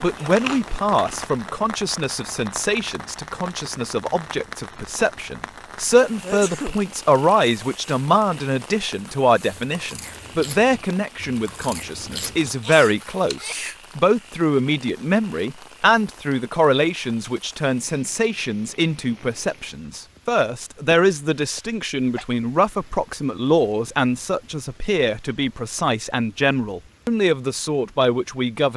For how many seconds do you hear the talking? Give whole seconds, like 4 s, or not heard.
29 s.